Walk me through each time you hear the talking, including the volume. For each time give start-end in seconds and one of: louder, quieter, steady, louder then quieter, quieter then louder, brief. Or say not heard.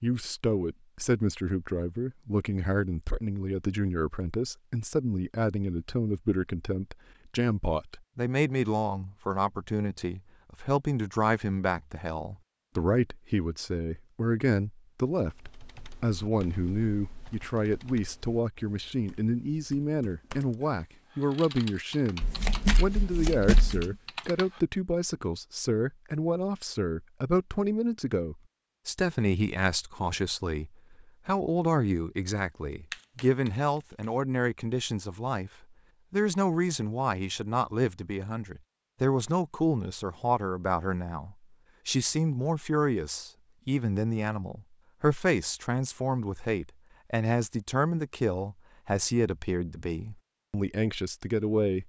0.0-51.8 steady.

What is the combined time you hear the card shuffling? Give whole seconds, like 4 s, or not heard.
2 s.